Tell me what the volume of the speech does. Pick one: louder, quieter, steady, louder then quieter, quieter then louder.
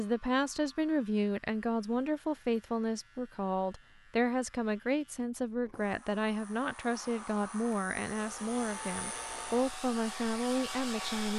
steady.